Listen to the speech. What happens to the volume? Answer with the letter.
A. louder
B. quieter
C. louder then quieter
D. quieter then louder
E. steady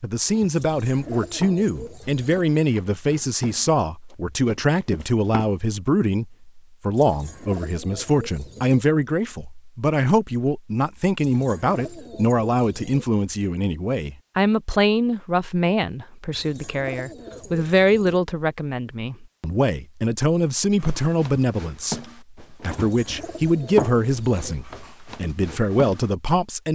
E.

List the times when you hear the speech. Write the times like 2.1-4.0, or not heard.
0.0-26.7.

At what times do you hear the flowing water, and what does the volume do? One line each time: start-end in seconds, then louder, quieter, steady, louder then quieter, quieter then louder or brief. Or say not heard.
not heard.